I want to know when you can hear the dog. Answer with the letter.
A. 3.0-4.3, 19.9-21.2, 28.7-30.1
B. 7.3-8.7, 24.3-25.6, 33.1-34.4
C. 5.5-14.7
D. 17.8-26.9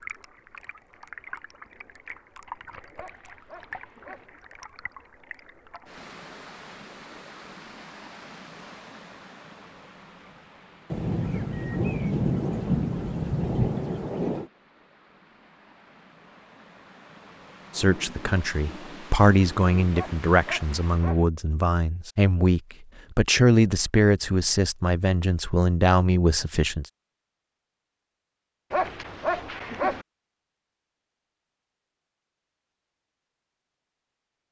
A.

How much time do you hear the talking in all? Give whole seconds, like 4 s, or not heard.
9 s.